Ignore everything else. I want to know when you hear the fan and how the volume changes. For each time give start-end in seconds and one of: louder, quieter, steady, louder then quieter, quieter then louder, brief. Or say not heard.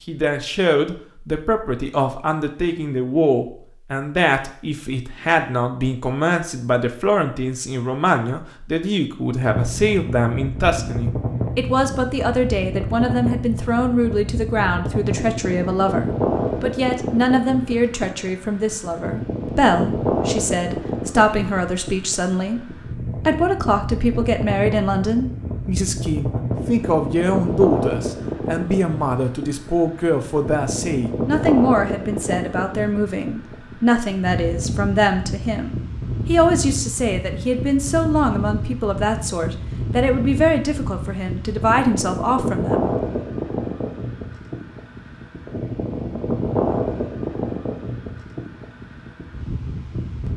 9.4-50.3 steady.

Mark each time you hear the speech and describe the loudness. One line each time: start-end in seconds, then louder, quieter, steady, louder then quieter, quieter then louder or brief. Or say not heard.
0.1-43.0 steady.